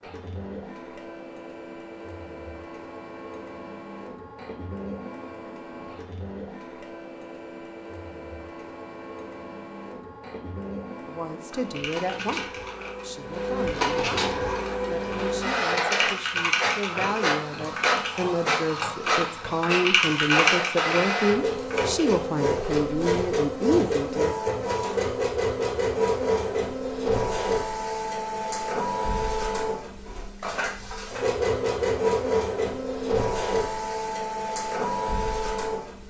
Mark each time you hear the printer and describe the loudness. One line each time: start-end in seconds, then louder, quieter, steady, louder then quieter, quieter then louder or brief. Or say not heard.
0.0-36.0 louder.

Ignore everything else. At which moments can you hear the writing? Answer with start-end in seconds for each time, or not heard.
not heard.